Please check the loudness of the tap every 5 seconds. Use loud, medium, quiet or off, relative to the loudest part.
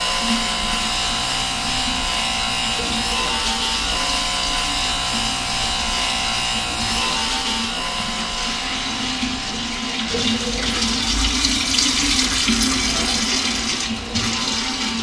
medium, medium, loud.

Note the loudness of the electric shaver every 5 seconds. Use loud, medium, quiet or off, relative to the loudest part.
loud, loud, medium.